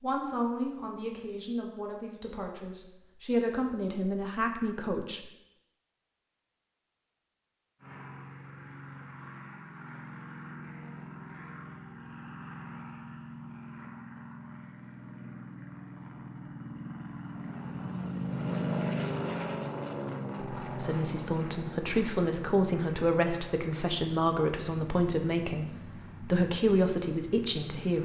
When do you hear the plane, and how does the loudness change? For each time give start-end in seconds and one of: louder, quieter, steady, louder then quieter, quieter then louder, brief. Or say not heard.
7.8-28.0 louder then quieter.